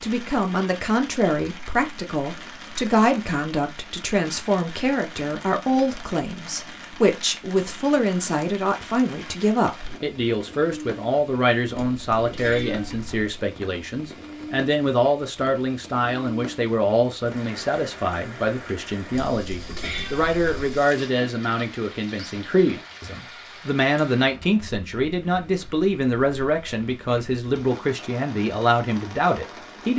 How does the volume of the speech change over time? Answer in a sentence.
The volume of the speech stays about the same.